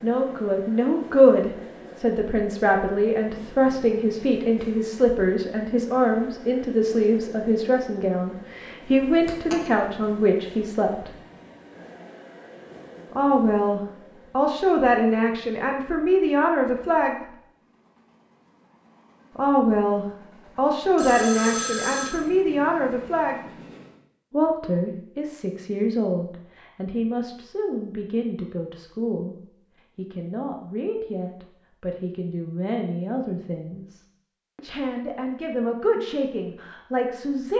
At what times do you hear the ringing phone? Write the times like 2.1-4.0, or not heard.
9.1-9.7, 20.9-22.1.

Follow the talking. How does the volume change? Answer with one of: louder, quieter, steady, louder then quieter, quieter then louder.
quieter.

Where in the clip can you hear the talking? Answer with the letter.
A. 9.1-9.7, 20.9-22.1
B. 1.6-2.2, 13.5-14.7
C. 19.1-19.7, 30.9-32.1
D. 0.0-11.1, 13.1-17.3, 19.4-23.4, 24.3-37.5
D.